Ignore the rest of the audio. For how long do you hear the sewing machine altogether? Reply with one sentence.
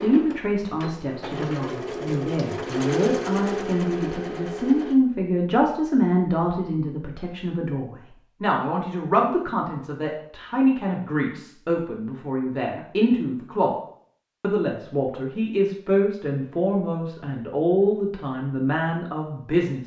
You can hear the sewing machine for 5 seconds altogether.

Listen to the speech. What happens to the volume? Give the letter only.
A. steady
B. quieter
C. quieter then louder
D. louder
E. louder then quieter
A.